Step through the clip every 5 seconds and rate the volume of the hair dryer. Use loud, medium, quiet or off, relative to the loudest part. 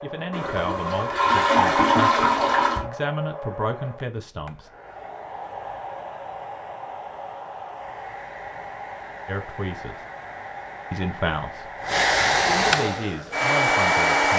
quiet, quiet, loud.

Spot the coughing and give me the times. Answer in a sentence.
You can't hear the coughing here.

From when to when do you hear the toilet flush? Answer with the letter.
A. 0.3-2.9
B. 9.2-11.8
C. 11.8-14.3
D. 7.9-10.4
A.